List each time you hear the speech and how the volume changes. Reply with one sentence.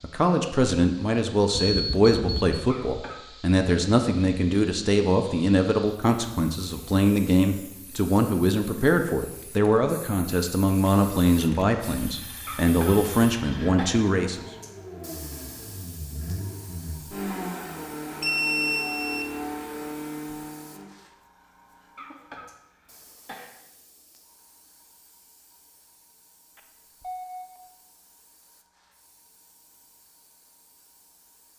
The speech can be heard from 0.0 to 14.4 s, at a steady volume.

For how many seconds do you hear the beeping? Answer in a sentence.
The beeping can be heard for 3 seconds in total.